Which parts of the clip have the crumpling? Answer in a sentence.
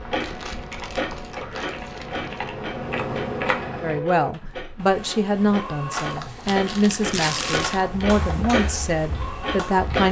You can hear the crumpling from 0.2 to 2.5 s and from 5.9 to 7.8 s.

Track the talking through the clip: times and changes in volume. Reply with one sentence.
The talking can be heard from 3.8 to 10.0 s, at a steady volume.